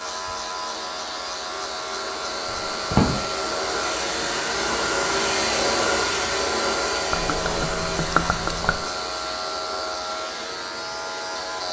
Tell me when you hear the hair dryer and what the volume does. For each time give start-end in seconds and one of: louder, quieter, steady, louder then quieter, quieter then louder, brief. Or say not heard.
0.0-11.6 louder then quieter.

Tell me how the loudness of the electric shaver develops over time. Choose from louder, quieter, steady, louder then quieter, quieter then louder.
steady.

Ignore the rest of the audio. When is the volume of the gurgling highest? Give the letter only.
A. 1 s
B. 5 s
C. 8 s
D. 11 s
C.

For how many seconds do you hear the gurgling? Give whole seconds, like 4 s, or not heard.
2 s.